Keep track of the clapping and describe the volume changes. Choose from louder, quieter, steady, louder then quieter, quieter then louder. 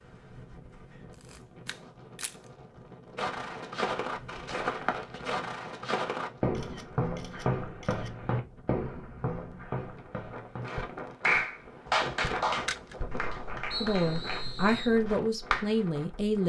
quieter.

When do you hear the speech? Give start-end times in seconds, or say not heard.
13.8-16.4.